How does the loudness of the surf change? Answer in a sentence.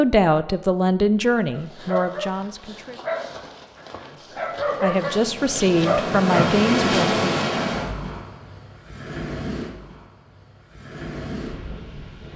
The volume of the surf goes down.